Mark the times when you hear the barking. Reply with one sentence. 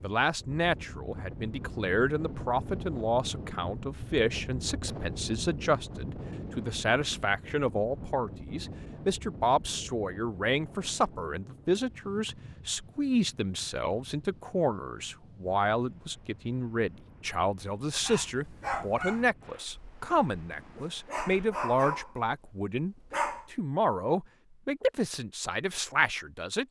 The barking can be heard from 18.0 to 23.5 s.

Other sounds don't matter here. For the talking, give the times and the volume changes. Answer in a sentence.
You can hear the talking from 0.0 to 26.6 s, at a steady volume.